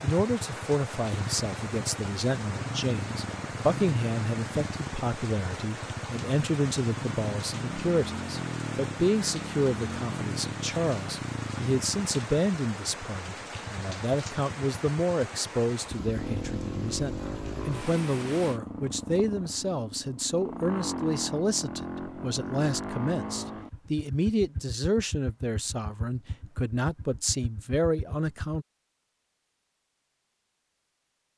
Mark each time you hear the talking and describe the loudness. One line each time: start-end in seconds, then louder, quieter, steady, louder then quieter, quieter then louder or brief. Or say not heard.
0.0-28.6 steady.